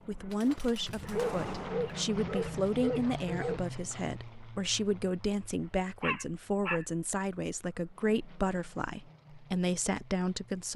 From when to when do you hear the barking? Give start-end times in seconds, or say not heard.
0.8-3.6, 6.0-7.2.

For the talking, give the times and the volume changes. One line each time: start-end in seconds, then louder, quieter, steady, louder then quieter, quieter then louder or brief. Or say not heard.
0.1-10.7 steady.